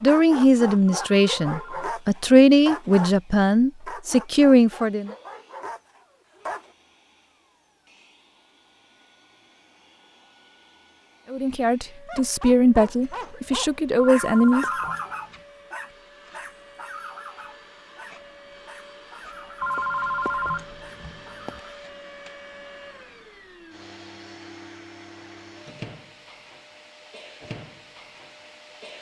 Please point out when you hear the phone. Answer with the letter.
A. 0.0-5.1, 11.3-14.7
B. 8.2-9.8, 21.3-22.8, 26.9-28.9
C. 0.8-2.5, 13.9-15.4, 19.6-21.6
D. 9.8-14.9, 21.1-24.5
C.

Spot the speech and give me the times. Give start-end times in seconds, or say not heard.
0.0-5.1, 11.3-14.7.